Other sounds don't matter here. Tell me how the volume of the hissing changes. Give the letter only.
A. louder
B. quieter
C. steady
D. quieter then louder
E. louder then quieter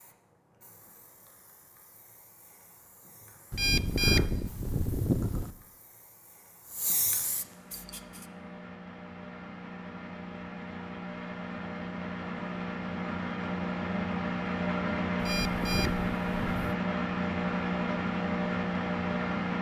A.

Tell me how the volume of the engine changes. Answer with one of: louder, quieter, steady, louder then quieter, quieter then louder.
louder.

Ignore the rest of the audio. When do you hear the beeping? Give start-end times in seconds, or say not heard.
3.5-5.5, 15.2-16.6.